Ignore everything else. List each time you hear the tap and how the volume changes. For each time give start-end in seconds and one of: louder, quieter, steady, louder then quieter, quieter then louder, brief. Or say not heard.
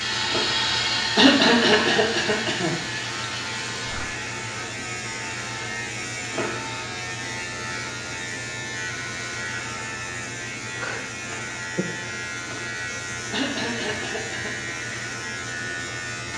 0.0-4.1 quieter.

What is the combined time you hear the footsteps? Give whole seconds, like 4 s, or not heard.
not heard.